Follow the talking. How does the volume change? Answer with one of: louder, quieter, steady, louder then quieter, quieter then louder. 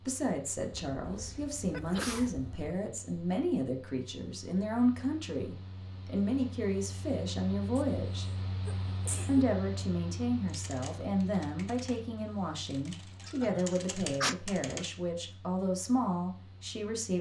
steady.